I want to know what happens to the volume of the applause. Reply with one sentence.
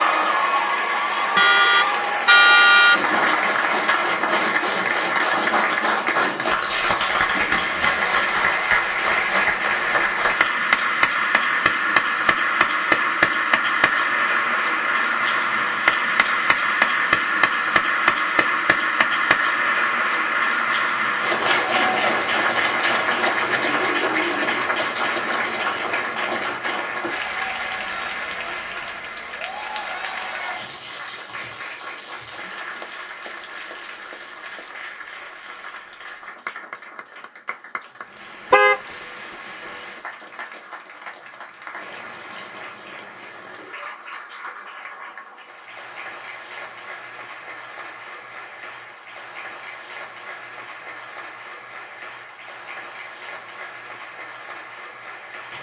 The volume of the applause goes down.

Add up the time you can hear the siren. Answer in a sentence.
The siren can't be heard in this clip.